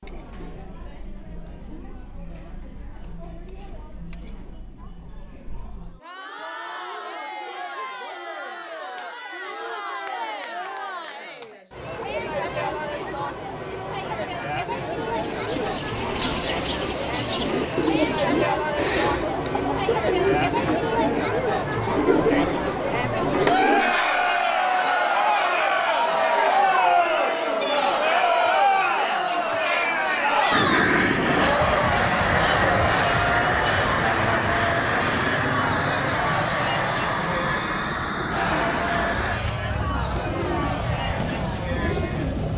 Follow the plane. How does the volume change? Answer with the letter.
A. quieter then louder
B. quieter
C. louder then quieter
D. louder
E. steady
B.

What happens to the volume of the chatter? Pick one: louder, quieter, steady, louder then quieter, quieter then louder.
louder then quieter.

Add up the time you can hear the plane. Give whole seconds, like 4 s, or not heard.
12 s.